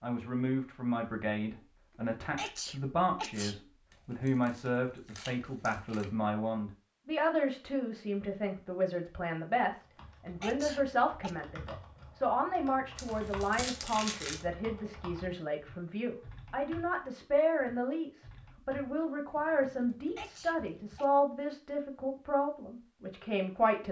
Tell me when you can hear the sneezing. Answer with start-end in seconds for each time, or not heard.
2.4-3.6, 10.4-11.3, 20.1-21.1.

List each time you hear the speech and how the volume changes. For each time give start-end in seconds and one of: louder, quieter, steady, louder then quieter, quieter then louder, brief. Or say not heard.
0.0-23.8 steady.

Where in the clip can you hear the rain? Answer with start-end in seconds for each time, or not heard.
not heard.